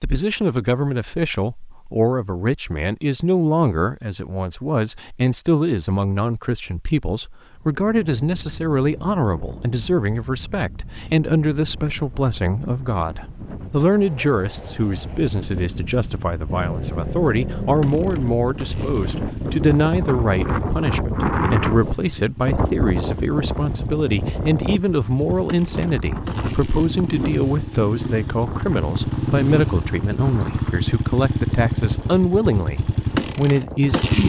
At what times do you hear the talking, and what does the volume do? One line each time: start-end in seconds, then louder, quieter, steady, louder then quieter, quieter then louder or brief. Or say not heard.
0.0-34.2 steady.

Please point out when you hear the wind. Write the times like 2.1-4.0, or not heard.
7.5-34.0.